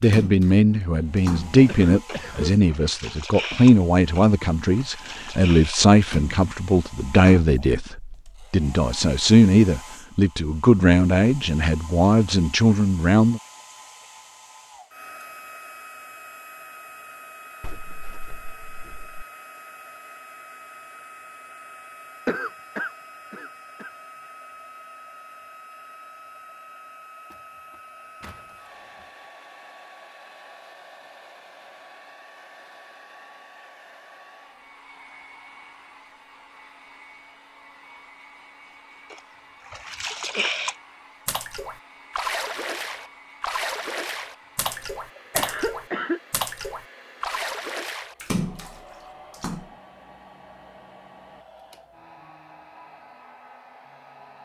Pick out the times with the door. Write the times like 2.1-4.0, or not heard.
17.6-19.2, 27.3-29.1.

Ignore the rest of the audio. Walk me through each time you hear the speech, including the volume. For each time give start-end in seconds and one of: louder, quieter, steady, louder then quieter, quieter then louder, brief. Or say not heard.
0.0-13.4 steady.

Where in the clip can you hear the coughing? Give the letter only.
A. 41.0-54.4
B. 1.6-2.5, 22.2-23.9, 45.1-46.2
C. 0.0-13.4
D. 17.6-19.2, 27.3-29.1
B.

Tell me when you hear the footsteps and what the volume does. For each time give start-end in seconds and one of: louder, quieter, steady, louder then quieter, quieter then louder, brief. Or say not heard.
not heard.